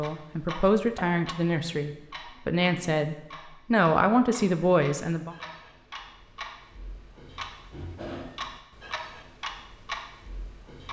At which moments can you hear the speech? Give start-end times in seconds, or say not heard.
0.0-5.3.